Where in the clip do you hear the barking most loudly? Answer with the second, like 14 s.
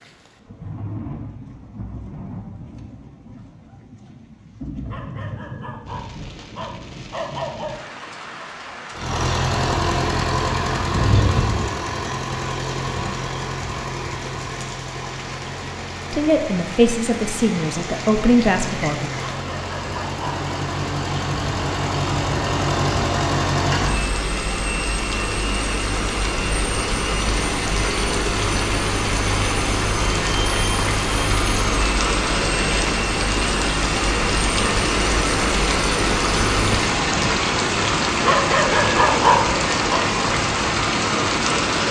39 s.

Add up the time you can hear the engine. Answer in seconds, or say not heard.
28 s.